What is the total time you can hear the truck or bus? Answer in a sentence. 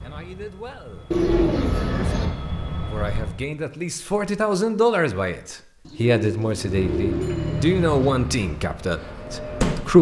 You can hear the truck or bus for 7 seconds altogether.